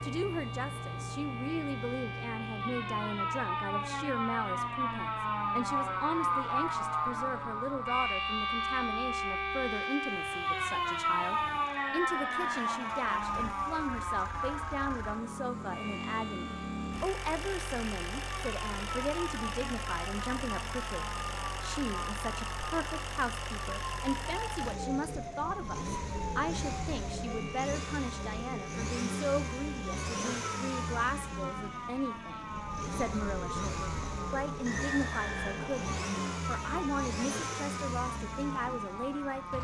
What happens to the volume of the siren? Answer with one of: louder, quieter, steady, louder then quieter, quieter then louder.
quieter.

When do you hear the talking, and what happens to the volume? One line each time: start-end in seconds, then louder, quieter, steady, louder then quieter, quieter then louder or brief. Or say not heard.
0.0-39.5 steady.